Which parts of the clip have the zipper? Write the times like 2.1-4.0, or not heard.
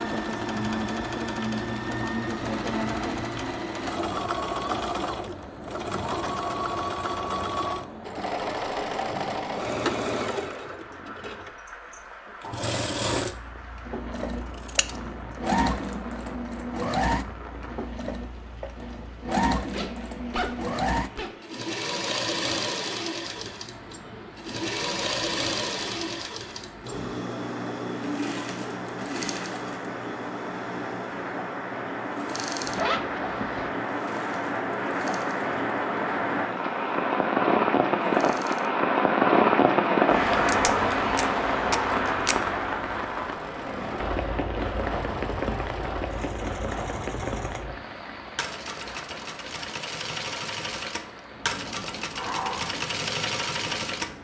19.7-21.4, 32.6-33.7.